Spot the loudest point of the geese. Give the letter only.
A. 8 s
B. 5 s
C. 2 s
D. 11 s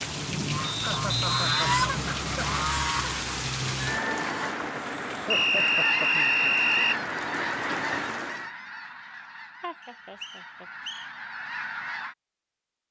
C.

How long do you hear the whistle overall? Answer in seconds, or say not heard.
5 s.